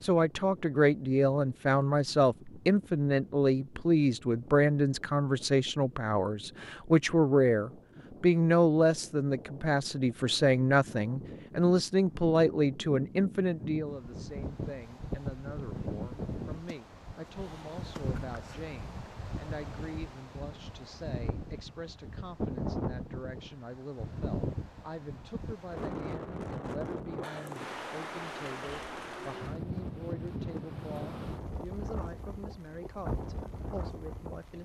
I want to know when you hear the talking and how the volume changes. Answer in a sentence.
You can hear the talking from 0.0 to 34.6 s, getting quieter.